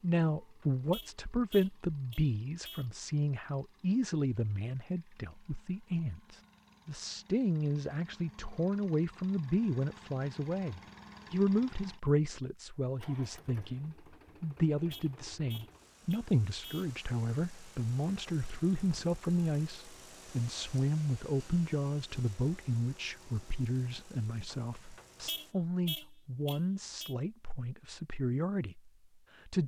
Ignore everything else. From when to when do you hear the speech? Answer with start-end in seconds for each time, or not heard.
0.0-29.6.